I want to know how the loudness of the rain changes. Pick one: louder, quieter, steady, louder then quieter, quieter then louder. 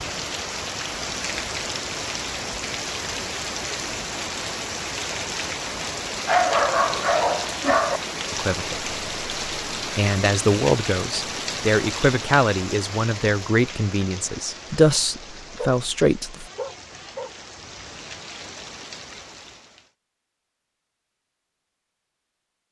quieter.